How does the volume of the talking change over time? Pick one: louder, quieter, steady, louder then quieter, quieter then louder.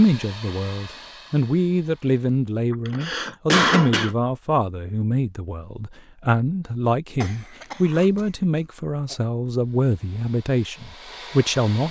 steady.